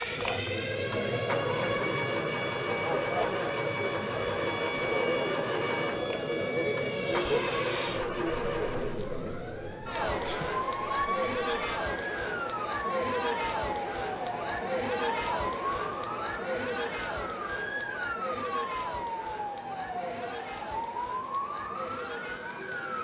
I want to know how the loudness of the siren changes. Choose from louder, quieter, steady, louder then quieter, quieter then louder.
steady.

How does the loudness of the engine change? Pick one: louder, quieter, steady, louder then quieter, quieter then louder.
steady.